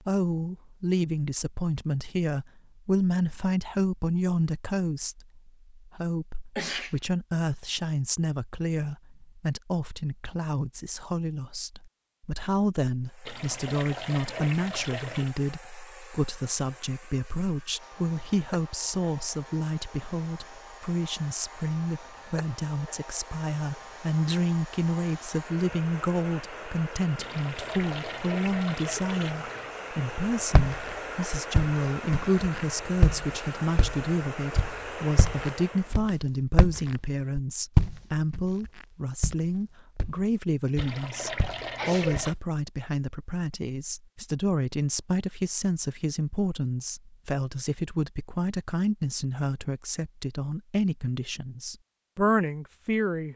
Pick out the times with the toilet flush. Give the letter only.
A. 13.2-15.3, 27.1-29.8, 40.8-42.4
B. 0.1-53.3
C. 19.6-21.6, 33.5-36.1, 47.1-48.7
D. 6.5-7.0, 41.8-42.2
A.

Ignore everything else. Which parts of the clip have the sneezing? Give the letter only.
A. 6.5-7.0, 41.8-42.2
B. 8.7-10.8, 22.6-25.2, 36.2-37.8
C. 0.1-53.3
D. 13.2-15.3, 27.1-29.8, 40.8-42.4
A.